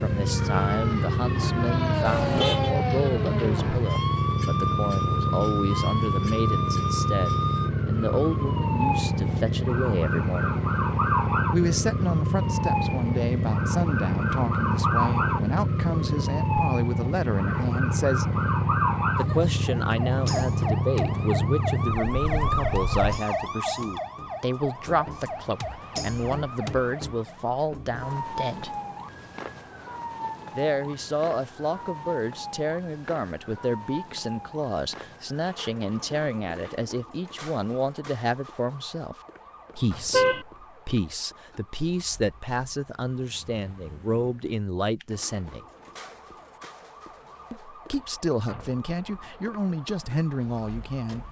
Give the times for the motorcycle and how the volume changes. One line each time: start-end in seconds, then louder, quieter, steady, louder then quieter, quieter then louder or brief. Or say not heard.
0.0-23.2 steady.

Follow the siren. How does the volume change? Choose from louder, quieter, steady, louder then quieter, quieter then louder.
quieter.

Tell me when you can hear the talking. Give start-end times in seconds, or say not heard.
0.0-10.6, 11.5-18.3, 19.1-28.7, 30.6-39.1, 39.8-45.6, 47.5-51.2.